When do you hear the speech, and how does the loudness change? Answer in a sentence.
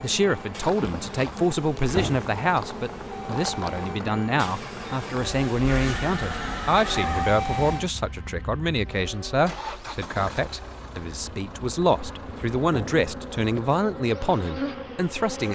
The speech can be heard from 0.0 to 15.4 s, at a steady volume.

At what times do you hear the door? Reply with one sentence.
The door can be heard from 1.9 to 2.3 s and from 12.7 to 13.1 s.